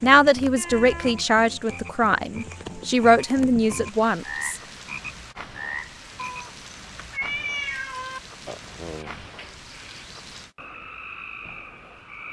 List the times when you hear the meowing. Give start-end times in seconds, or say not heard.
0.6-1.2, 6.2-8.2.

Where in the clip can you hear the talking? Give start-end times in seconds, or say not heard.
0.0-4.5.